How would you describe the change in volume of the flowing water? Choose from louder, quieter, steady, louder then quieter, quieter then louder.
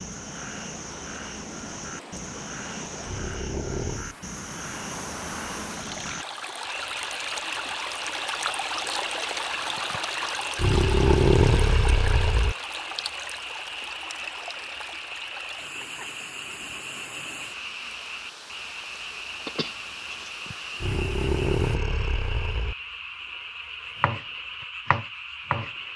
louder then quieter.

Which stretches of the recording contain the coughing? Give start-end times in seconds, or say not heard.
19.4-20.3.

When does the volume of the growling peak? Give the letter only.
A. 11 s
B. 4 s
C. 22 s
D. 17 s
A.